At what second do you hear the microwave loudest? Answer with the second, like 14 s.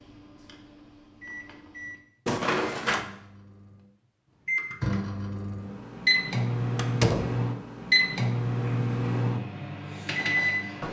8 s.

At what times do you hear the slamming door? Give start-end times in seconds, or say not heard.
2.2-3.0, 6.8-7.5.